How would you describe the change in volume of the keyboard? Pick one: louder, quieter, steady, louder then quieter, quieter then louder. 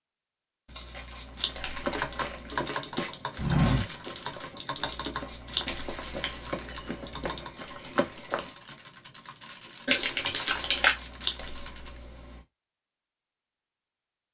quieter.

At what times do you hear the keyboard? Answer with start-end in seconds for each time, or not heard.
1.9-12.0.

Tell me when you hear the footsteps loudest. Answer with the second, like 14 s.
4 s.